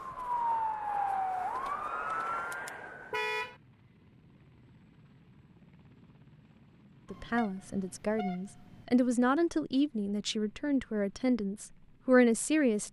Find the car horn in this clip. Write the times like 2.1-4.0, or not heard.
3.1-3.5, 7.0-8.8.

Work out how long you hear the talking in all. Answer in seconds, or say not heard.
6 s.